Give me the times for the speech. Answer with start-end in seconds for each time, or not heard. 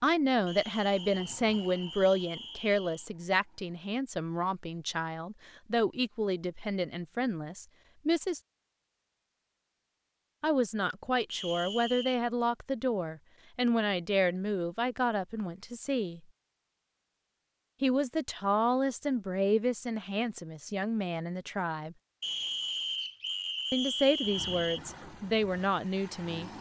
0.0-8.4, 10.4-16.2, 17.8-21.9, 23.7-26.5.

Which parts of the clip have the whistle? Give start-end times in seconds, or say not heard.
0.5-3.0, 11.3-12.2, 22.2-24.8.